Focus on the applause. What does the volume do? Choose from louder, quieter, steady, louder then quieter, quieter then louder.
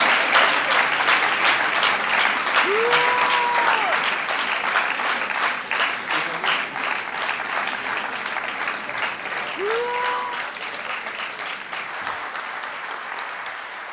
quieter.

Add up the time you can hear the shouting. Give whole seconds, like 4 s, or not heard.
2 s.